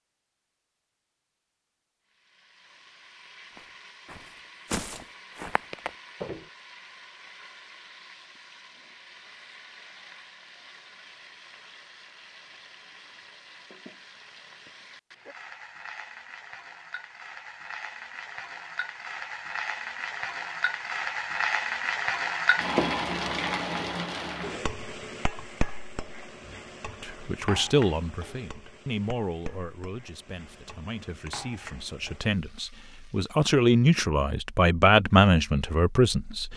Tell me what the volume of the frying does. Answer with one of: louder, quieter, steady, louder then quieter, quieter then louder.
louder then quieter.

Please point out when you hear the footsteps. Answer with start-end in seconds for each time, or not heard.
3.5-6.5.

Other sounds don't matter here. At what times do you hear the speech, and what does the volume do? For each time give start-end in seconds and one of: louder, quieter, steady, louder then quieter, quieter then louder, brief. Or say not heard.
27.0-36.5 quieter then louder.